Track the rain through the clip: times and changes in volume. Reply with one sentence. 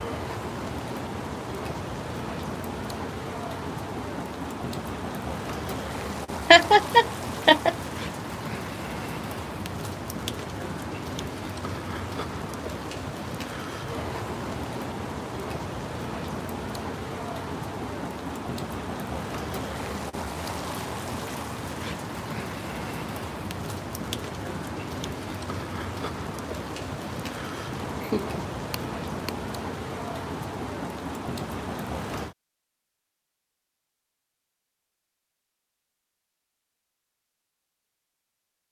The rain can be heard from 0.0 to 32.4 s, at a steady volume.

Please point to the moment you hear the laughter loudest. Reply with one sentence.
The loudest moment of the laughter is at 7 seconds.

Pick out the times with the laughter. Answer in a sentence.
You can hear the laughter from 6.5 to 7.8 s and from 27.7 to 29.3 s.